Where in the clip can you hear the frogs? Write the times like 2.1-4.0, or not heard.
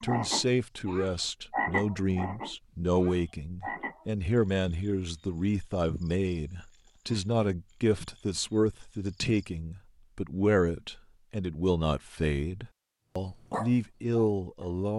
0.0-9.4.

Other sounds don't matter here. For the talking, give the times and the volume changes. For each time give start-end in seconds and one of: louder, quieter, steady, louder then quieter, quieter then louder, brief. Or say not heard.
0.0-14.9 steady.